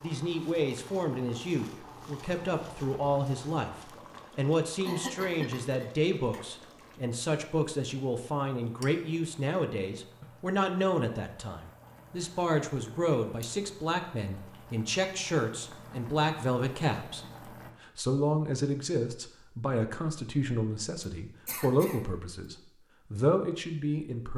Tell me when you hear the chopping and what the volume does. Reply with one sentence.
You can't hear the chopping here.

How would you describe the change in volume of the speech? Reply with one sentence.
The volume of the speech stays about the same.